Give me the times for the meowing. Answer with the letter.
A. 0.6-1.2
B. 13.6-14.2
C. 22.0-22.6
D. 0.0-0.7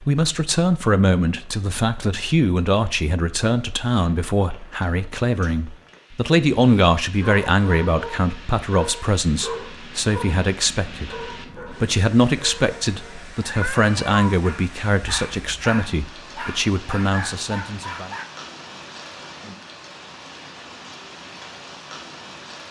B.